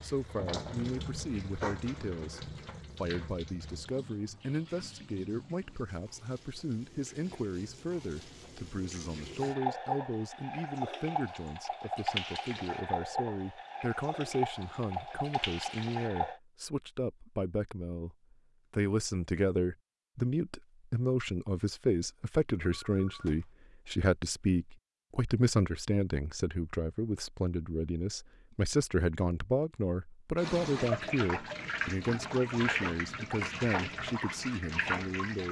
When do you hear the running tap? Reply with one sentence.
You can hear the running tap from 0.0 to 16.4 s and from 30.4 to 35.4 s.